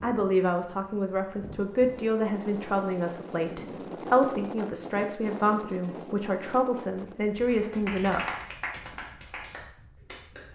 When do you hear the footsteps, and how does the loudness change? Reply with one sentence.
The footsteps can't be heard in this clip.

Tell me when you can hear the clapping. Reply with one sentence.
You can hear the clapping from 7.5 to 10.4 s.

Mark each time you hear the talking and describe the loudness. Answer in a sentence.
The talking can be heard from 0.0 to 8.2 s, at a steady volume.